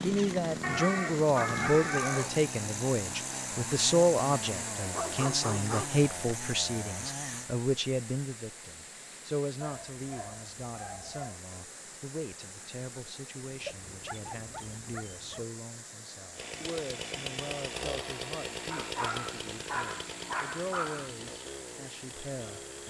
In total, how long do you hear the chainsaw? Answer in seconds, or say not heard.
14 s.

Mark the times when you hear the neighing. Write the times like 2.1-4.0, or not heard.
not heard.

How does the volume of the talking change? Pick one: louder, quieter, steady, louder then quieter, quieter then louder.
quieter.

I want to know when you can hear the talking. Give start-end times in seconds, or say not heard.
0.0-22.8.